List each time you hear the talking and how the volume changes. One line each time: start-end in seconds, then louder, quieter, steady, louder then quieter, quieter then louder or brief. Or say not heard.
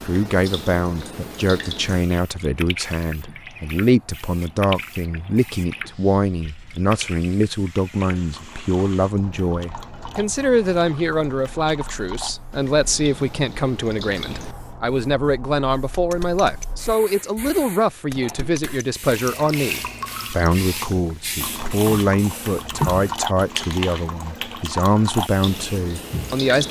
0.0-26.6 steady.